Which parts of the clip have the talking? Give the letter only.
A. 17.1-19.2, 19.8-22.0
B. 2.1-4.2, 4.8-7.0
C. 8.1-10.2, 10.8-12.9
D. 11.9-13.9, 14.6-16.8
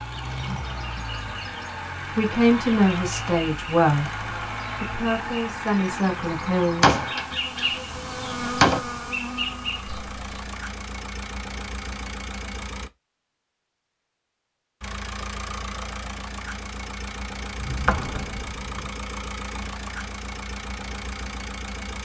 B.